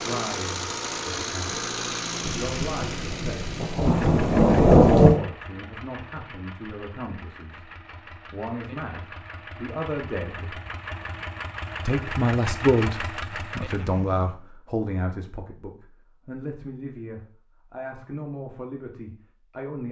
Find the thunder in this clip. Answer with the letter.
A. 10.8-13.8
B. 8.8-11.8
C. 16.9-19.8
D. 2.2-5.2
D.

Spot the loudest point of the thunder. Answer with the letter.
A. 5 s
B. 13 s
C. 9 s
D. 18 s
A.